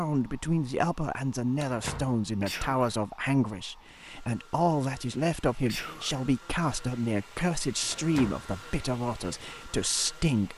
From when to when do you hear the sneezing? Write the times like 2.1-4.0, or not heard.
2.4-3.0, 5.7-6.2.